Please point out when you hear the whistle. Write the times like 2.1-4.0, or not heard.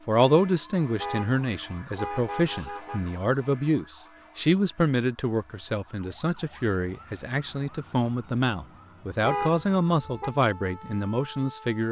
not heard.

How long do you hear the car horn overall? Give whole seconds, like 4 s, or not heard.
3 s.